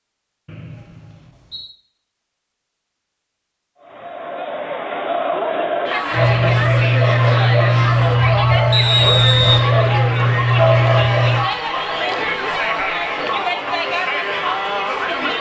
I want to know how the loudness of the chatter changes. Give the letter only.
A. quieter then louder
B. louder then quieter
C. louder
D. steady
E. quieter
D.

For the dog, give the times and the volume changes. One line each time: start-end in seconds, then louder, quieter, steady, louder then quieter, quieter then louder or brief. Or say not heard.
6.1-11.4 steady.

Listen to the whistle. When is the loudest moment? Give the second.
9 s.